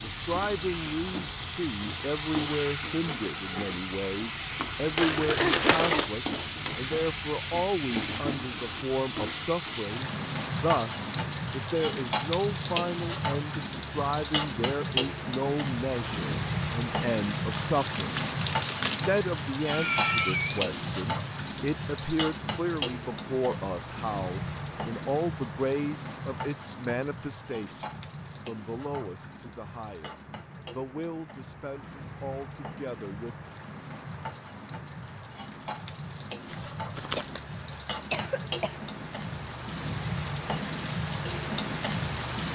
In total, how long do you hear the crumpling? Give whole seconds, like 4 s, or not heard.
4 s.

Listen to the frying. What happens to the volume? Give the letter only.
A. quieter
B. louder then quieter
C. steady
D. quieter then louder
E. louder
D.